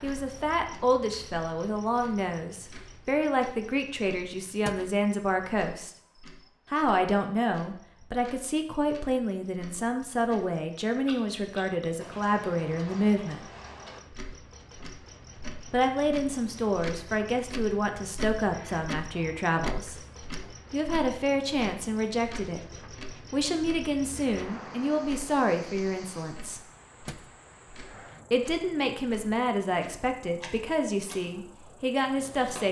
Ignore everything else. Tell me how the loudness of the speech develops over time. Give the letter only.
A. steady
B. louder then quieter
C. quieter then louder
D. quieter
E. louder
A.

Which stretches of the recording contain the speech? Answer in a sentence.
You can hear the speech from 0.0 to 5.9 s, from 6.7 to 13.4 s, from 15.7 to 20.0 s, from 20.7 to 26.6 s and from 28.3 to 32.6 s.